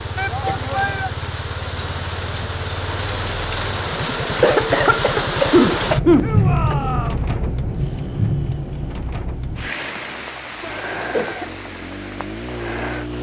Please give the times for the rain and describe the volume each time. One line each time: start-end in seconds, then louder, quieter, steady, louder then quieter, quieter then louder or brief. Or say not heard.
0.0-13.1 louder then quieter.